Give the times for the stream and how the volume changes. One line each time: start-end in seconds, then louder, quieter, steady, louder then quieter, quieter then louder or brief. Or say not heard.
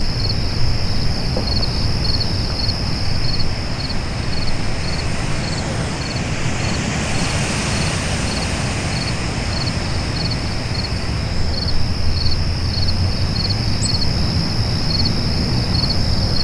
0.0-16.3 louder then quieter.